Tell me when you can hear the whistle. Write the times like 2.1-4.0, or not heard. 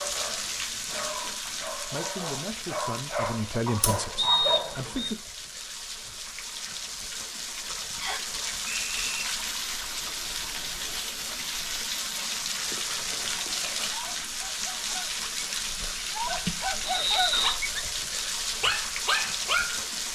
4.2-5.2, 8.0-9.2, 16.8-17.6.